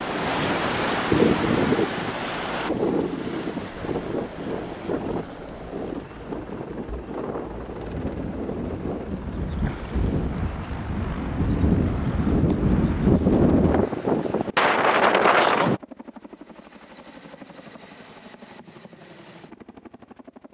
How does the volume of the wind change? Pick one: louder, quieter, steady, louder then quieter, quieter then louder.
quieter then louder.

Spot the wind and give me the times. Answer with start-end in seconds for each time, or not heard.
0.0-15.8.